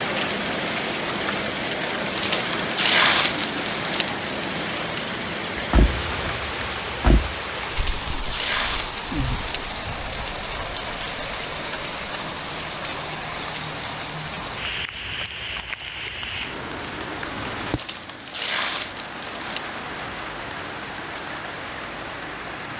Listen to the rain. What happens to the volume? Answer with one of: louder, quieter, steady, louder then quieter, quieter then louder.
quieter.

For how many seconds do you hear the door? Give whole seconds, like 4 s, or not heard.
2 s.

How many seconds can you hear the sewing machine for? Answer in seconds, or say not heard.
not heard.